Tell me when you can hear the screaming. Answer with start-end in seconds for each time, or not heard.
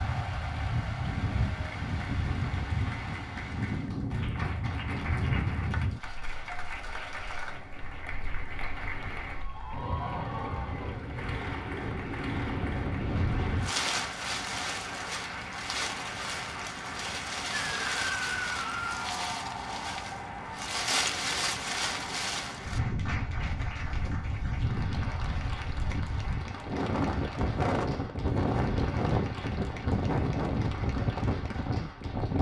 17.6-19.1.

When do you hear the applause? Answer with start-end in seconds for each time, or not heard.
0.0-32.3.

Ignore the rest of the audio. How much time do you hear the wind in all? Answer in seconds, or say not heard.
32 s.